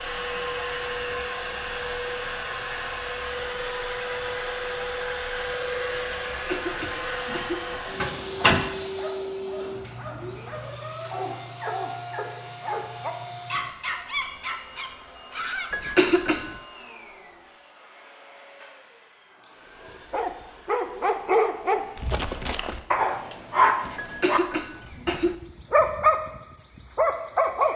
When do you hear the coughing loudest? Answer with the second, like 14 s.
16 s.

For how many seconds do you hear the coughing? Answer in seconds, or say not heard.
4 s.